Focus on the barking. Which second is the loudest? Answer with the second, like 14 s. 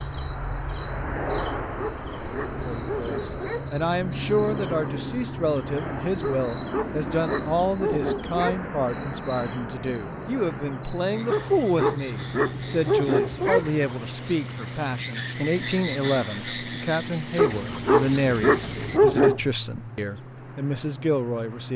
19 s.